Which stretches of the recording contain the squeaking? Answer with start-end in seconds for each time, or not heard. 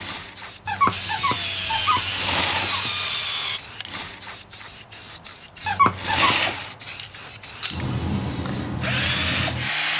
0.7-3.1, 5.7-6.3.